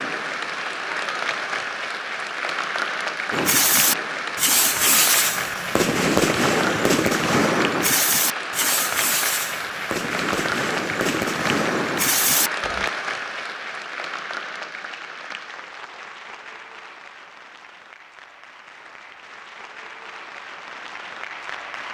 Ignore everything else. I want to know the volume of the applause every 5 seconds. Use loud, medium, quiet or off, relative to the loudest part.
loud, loud, loud, quiet, medium.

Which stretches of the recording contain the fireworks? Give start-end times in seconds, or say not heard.
3.3-12.9.